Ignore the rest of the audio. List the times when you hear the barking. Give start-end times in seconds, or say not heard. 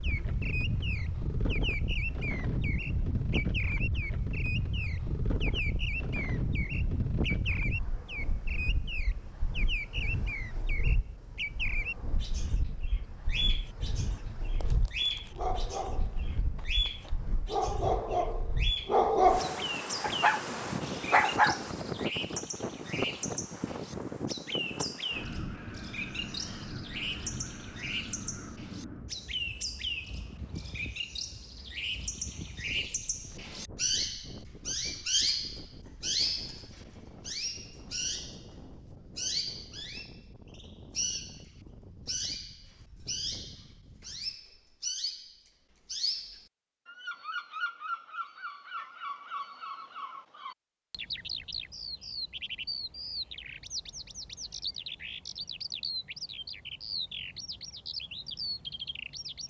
14.6-21.6.